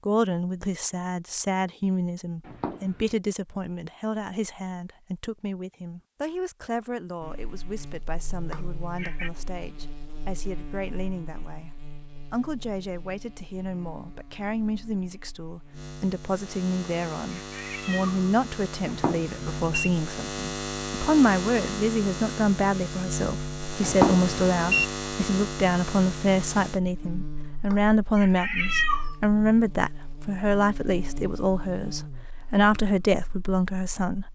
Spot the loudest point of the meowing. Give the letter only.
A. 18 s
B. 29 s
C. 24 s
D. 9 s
B.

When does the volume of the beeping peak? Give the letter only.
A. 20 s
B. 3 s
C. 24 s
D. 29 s
C.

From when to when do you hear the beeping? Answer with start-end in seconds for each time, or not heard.
2.5-3.1, 18.9-19.9, 23.8-24.9.